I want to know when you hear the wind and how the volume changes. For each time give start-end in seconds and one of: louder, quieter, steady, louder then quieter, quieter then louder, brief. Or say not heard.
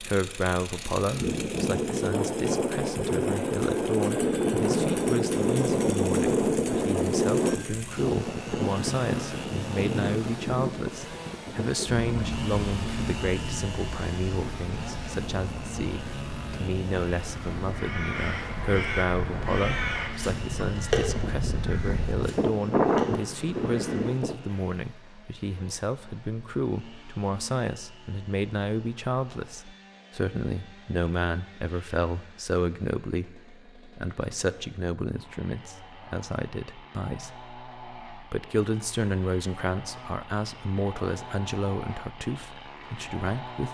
0.0-24.4 quieter then louder.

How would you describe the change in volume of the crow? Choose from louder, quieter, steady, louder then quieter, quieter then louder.
quieter.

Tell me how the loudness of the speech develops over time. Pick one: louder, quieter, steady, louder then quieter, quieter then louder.
steady.